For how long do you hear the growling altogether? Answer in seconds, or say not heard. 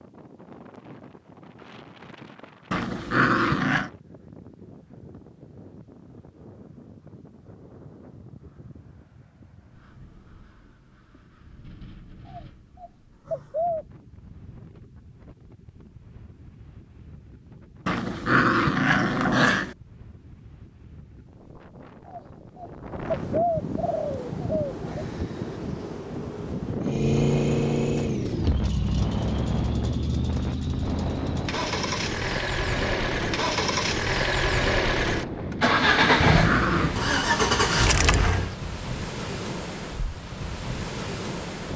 4 s.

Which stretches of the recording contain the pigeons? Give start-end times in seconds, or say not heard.
12.2-13.8, 22.1-25.1.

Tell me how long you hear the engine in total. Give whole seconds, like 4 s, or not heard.
12 s.